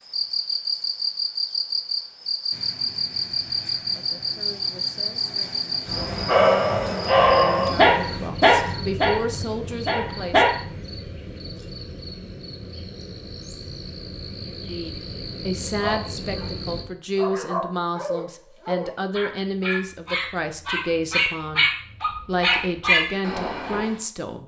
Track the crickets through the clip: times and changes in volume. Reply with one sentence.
You can hear the crickets from 0.0 to 16.9 s, getting quieter.